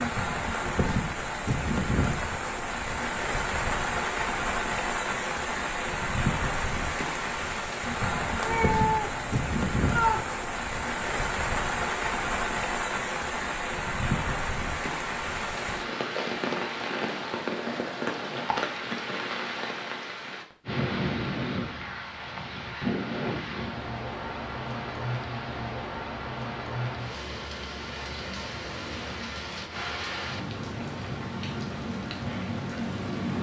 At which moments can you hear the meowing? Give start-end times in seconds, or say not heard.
8.4-10.3.